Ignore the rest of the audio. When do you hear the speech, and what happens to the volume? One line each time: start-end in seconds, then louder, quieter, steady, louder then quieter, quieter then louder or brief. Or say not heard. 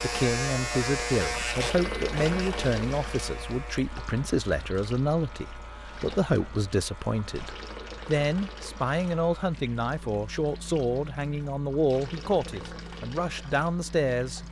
0.0-14.4 steady.